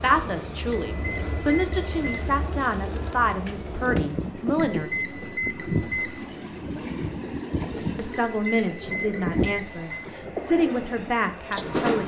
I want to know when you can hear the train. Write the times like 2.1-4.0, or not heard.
0.0-12.0.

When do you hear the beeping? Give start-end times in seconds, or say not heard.
0.7-2.3, 4.6-6.3, 8.1-10.1.